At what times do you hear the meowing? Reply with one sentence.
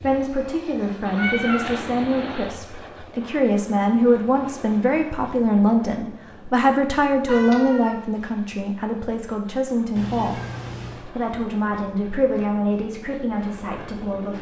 You can hear the meowing from 1.1 to 2.6 s, from 7.2 to 8.0 s and from 9.9 to 11.1 s.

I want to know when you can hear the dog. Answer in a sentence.
You can't hear the dog here.